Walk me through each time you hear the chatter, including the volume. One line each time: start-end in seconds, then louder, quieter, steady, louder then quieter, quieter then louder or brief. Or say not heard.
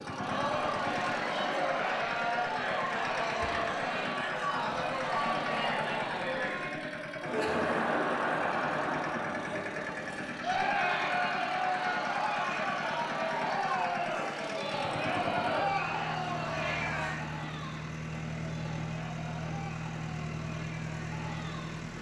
0.0-21.9 quieter.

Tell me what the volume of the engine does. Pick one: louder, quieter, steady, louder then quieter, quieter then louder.
steady.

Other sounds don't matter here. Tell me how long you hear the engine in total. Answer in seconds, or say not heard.
22 s.